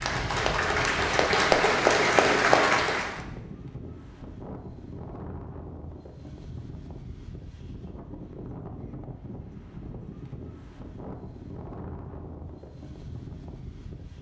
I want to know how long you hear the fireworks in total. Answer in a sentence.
You can't hear the fireworks here.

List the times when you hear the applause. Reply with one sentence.
You can hear the applause from 0.0 to 3.2 s.